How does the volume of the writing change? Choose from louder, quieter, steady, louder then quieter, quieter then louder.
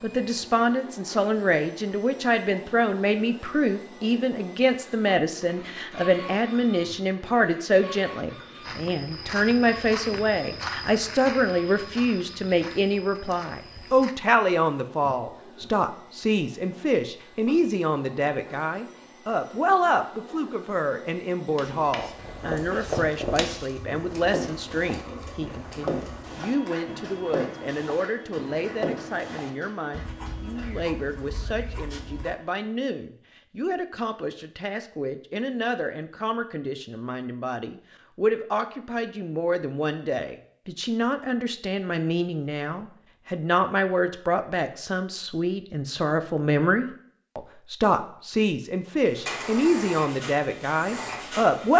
quieter.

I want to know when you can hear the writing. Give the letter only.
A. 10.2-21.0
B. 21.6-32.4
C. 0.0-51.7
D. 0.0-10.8
B.